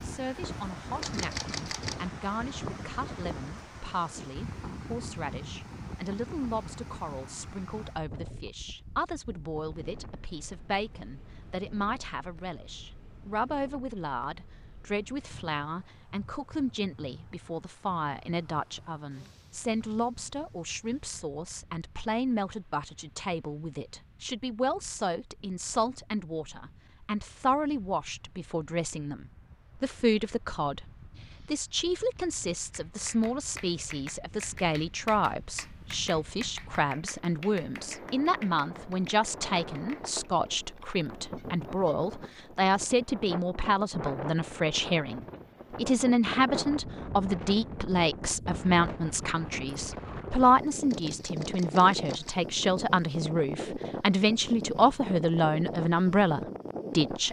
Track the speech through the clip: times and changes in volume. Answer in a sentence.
You can hear the speech from 0.0 to 57.2 s, getting louder.